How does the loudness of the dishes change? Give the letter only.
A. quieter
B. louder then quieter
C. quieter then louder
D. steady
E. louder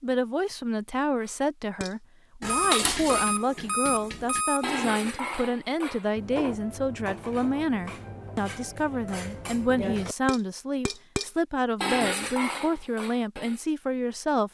C.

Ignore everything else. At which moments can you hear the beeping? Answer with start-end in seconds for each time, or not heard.
2.5-4.8.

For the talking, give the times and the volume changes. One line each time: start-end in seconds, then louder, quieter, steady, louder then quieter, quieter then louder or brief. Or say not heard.
0.0-14.4 steady.